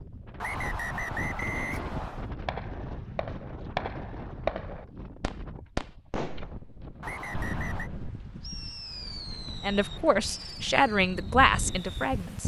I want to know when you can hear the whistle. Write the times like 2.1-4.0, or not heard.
0.4-2.4, 7.0-7.9.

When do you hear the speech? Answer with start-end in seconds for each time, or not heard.
9.6-12.4.